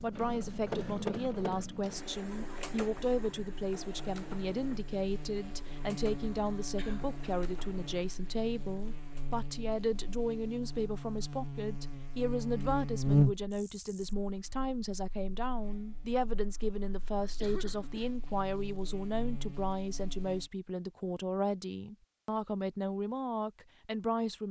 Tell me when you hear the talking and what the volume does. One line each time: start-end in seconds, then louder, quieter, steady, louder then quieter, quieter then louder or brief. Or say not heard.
0.0-24.4 steady.